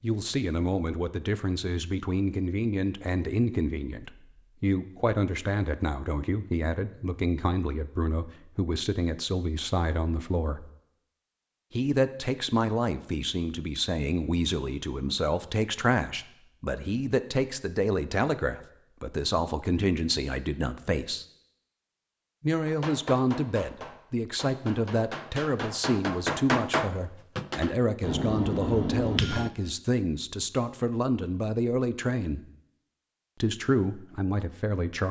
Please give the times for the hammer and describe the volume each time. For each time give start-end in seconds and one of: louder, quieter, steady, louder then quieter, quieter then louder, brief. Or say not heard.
22.6-29.5 louder.